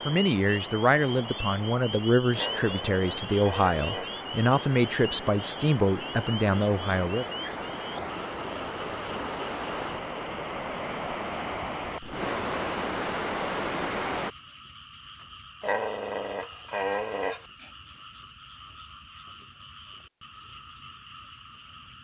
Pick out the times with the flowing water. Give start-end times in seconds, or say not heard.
0.0-14.3.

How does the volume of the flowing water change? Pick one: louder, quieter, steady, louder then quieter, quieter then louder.
louder.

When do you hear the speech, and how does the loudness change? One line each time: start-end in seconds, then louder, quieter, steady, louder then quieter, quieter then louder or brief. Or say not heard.
0.1-7.2 steady.